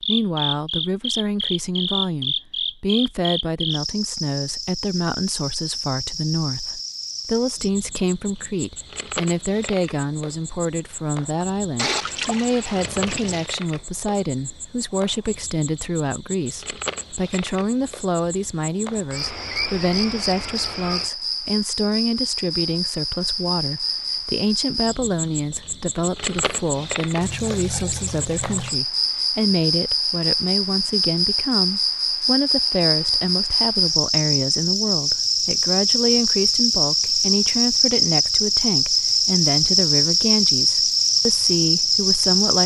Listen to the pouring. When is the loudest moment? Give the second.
12 s.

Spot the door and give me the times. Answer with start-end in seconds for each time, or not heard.
not heard.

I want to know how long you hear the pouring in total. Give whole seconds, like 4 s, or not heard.
3 s.